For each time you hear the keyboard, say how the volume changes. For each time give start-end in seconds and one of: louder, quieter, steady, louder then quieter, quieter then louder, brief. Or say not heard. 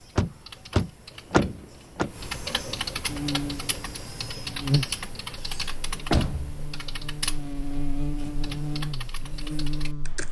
0.0-10.2 louder then quieter.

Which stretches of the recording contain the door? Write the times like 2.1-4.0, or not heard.
0.1-2.1, 5.5-6.6.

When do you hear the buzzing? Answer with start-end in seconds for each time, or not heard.
3.0-10.2.